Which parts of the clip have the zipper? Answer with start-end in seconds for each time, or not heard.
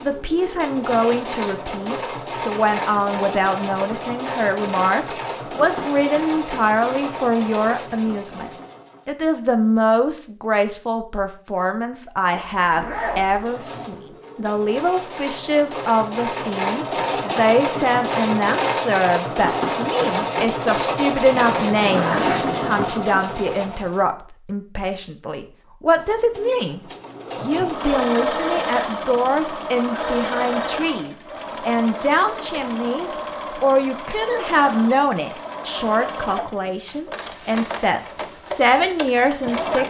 12.3-13.4, 21.3-22.9.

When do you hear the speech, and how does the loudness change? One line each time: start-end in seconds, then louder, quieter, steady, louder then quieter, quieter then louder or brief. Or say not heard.
0.0-39.8 steady.